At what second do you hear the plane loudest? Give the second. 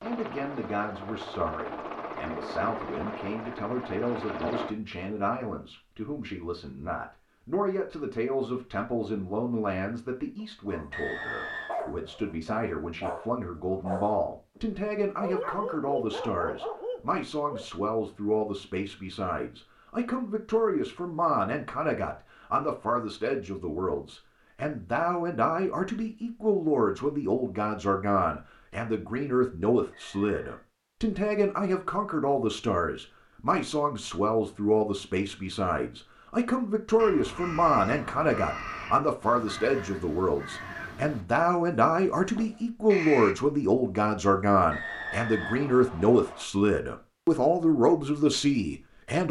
4 s.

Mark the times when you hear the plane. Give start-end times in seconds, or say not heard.
0.0-4.8.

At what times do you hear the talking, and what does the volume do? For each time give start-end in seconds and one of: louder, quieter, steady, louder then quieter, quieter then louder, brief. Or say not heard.
0.0-49.2 louder.